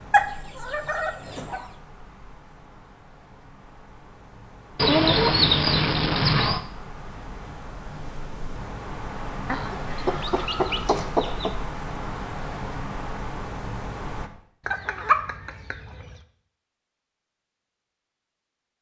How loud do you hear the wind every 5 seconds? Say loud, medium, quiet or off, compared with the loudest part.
quiet, loud, loud, off.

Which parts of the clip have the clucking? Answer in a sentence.
The clucking can be heard from 0.1 to 1.6 s, from 4.8 to 6.6 s, from 9.4 to 11.5 s and from 14.7 to 16.1 s.